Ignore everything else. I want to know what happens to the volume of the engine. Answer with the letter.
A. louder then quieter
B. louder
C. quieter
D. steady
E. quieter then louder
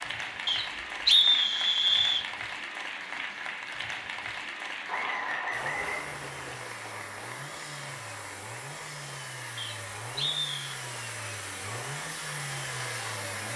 B.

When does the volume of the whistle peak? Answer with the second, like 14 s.
1 s.